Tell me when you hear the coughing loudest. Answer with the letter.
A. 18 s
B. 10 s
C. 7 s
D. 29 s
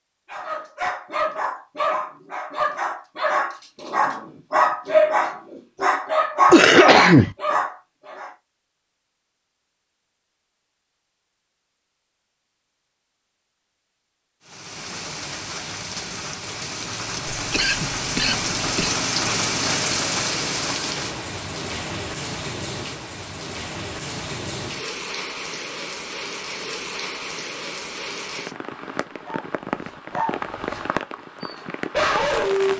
C.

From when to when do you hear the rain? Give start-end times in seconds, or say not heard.
14.4-32.7.